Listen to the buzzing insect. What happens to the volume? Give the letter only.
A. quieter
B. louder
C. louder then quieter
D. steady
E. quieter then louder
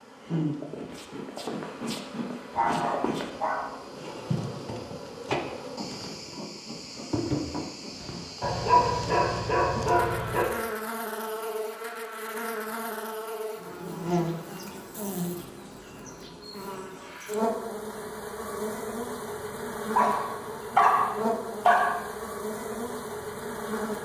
D.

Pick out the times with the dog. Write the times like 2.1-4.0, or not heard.
2.5-3.7, 8.4-10.4, 19.9-22.0.